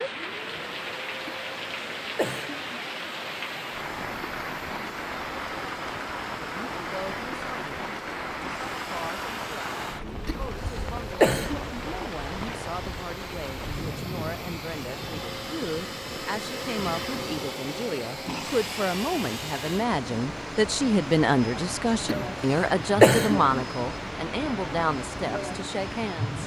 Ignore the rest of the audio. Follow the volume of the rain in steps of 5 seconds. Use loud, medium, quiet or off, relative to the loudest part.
loud, loud, loud, medium, loud, loud.